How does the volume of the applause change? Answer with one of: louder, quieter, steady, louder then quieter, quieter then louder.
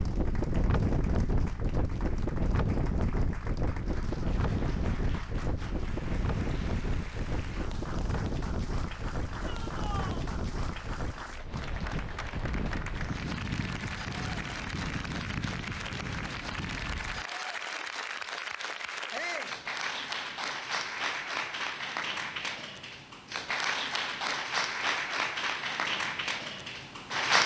louder.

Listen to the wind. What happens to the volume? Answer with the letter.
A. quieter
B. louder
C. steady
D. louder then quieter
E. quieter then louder
A.